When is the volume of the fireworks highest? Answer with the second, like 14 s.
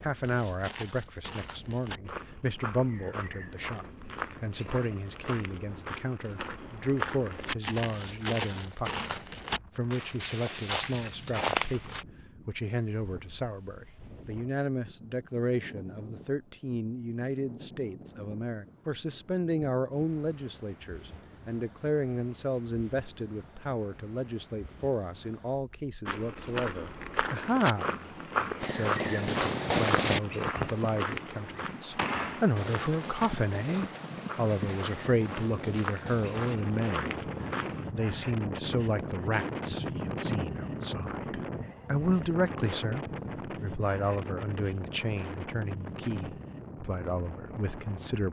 30 s.